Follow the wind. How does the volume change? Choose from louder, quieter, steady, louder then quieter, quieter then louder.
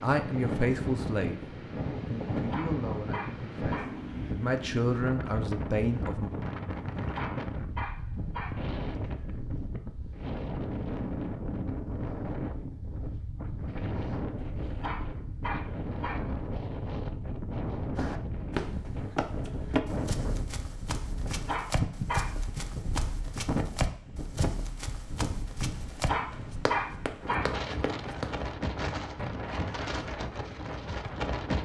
steady.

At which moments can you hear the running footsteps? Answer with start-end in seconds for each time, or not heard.
17.9-28.4.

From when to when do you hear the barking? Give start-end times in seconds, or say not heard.
2.5-4.0, 7.1-8.7, 14.8-16.4, 21.4-22.4, 26.1-27.6.